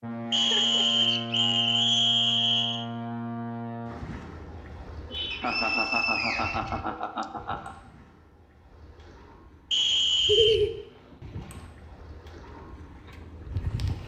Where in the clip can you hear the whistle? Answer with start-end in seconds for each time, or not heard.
0.3-2.9, 5.3-7.2, 9.7-10.6.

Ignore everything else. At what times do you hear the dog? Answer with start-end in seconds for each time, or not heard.
not heard.